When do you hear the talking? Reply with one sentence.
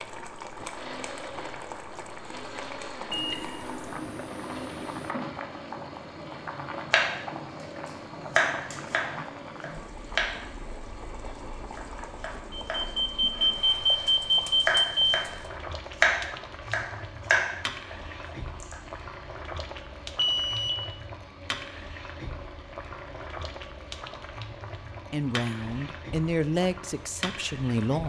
You can hear the talking from 25.1 to 28.0 s.